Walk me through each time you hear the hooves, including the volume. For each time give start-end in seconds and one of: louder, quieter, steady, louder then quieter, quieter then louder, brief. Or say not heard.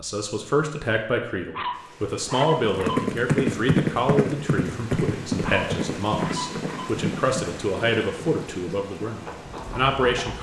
2.5-10.3 quieter.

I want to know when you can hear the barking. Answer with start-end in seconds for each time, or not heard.
1.5-3.1, 5.4-7.0.